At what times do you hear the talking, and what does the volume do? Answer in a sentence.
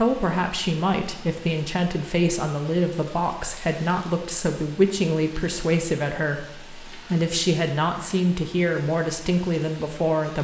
You can hear the talking from 0.0 to 10.4 s, at a steady volume.